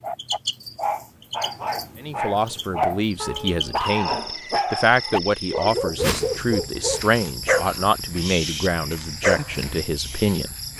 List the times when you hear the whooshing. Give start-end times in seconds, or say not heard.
6.0-6.5.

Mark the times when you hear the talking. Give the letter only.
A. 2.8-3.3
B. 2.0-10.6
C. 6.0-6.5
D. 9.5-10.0
B.